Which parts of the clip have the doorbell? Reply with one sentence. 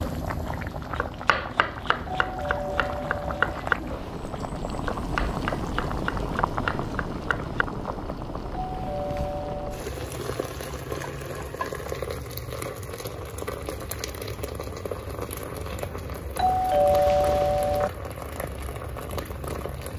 The doorbell can be heard from 2.0 to 3.5 s, from 8.7 to 9.9 s and from 16.4 to 17.9 s.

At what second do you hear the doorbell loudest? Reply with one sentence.
The loudest moment of the doorbell is at 17 seconds.